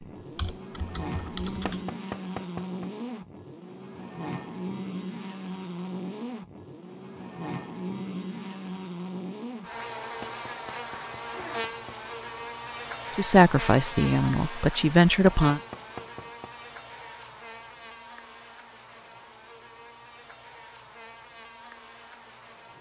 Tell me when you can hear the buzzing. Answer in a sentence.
The buzzing can be heard from 0.0 to 22.7 s.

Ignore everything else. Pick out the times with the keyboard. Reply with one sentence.
You can hear the keyboard from 0.0 to 1.9 s.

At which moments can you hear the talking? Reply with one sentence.
The talking can be heard from 13.2 to 15.6 s.